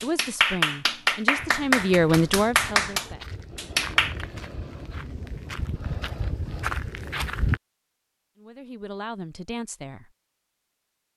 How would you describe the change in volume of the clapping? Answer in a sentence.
The loudness of the clapping goes down, then up.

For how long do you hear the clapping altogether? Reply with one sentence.
You can hear the clapping for 4 seconds altogether.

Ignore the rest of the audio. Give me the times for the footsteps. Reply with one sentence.
The footsteps can be heard from 1.4 to 7.6 s.